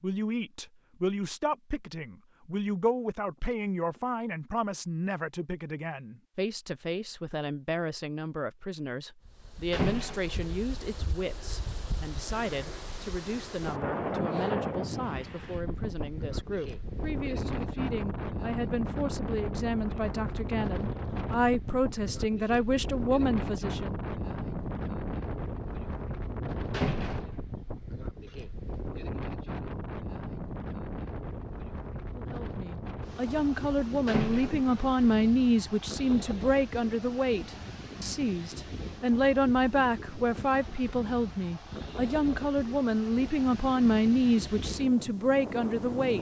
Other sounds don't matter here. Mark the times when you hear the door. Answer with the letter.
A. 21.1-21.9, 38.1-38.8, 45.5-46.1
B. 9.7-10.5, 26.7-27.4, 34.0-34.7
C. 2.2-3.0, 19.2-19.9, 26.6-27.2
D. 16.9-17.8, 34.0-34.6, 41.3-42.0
B.